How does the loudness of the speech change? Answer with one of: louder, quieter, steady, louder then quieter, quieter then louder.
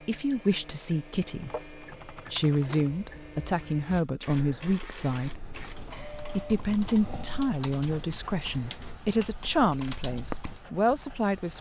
steady.